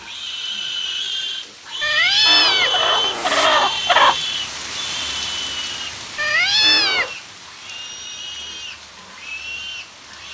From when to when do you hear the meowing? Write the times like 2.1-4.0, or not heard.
1.8-3.6, 6.2-7.1.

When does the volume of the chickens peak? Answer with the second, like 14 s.
4 s.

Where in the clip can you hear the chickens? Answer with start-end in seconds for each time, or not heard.
2.2-4.2.